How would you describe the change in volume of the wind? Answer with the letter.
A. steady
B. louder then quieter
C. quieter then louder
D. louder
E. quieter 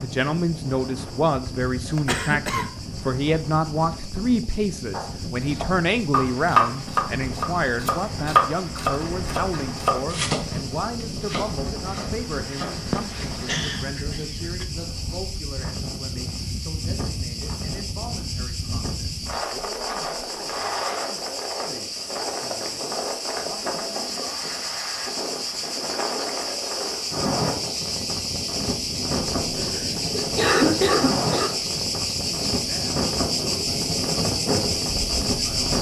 D.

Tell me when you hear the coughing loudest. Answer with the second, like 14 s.
31 s.